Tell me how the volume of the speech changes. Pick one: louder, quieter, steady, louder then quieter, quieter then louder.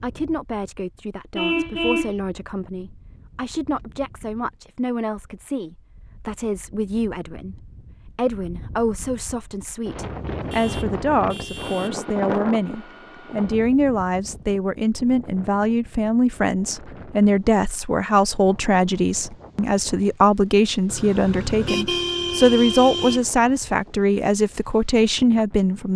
louder.